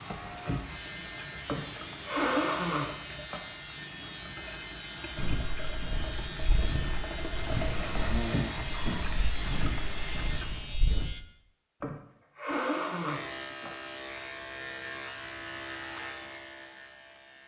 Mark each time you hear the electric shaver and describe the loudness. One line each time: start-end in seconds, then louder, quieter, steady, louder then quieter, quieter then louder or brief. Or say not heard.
0.0-11.2 steady
13.1-17.4 quieter.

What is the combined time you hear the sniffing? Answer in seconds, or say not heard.
6 s.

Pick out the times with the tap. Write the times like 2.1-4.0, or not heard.
0.0-10.8.